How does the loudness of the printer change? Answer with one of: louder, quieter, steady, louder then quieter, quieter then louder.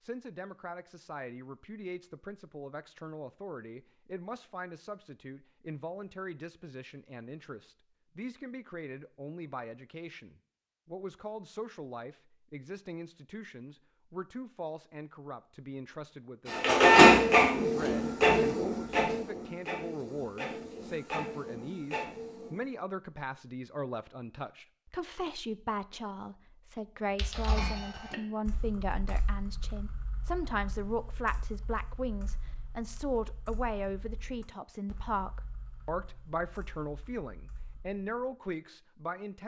quieter.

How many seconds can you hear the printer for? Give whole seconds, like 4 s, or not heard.
6 s.